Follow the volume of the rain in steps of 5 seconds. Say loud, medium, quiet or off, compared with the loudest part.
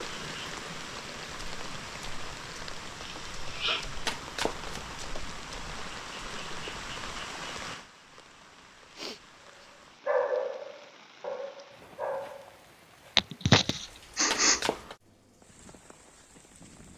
loud, loud, quiet, quiet.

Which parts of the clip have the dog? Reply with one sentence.
You can hear the dog from 10.1 to 13.1 s.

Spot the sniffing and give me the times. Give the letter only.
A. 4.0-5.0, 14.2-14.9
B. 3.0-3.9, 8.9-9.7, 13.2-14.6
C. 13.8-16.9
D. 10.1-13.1
B.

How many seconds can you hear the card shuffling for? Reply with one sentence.
You can hear the card shuffling for 2 seconds altogether.